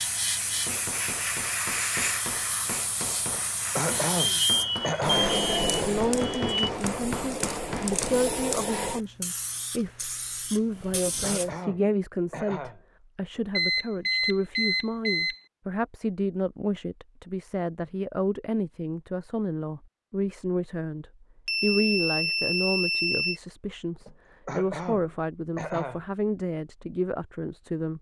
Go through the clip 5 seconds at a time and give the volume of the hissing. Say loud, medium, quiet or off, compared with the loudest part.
loud, loud, medium, off, off, off.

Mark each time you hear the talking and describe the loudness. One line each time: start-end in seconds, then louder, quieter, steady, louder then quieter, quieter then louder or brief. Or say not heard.
5.8-27.9 steady.